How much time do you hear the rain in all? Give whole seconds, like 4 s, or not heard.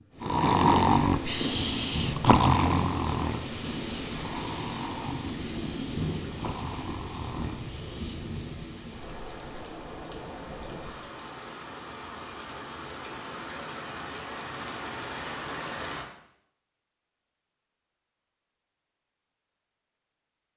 16 s.